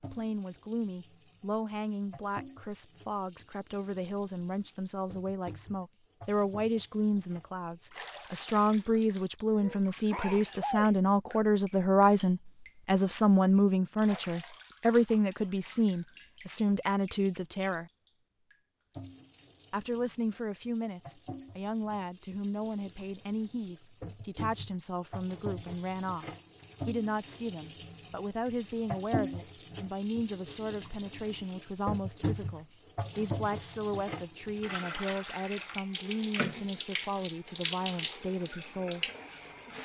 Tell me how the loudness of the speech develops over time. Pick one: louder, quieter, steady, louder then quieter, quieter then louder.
louder then quieter.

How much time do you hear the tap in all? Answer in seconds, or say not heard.
40 s.